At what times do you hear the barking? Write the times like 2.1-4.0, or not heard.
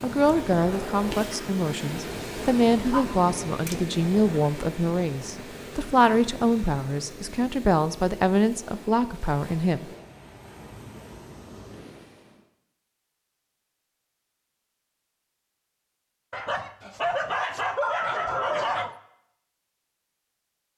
2.9-3.8, 16.3-18.9.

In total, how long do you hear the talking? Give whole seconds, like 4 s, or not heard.
10 s.